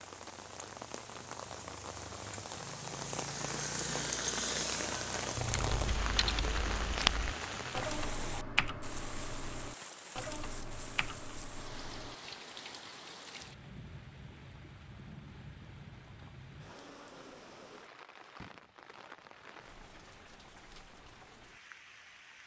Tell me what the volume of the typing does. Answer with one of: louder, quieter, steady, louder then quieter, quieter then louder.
quieter.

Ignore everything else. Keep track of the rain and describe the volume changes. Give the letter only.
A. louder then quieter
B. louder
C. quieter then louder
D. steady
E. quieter
E.